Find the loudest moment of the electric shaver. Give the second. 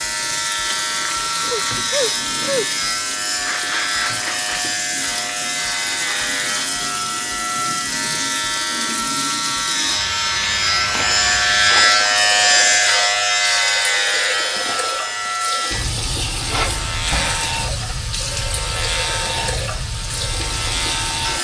12 s.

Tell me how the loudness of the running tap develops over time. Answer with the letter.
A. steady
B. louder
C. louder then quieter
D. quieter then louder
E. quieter
A.